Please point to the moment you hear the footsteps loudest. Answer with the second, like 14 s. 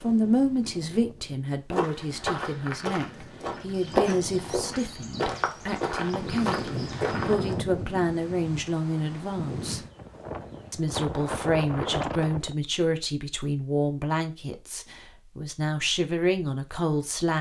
4 s.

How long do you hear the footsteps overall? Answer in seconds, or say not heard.
6 s.